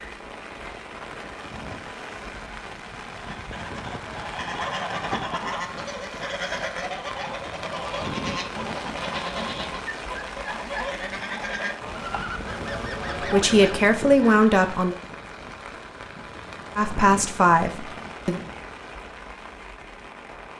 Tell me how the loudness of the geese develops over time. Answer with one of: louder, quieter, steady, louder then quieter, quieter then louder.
steady.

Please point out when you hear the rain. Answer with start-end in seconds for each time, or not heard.
0.0-20.5.